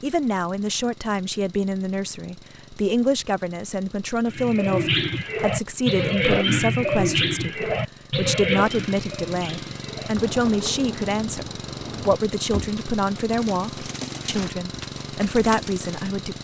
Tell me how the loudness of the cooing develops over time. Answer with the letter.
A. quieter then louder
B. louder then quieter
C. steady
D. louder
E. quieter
E.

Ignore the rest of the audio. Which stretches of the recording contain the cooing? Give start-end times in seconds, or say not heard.
4.2-16.1.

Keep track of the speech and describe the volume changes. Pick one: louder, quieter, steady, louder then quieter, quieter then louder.
steady.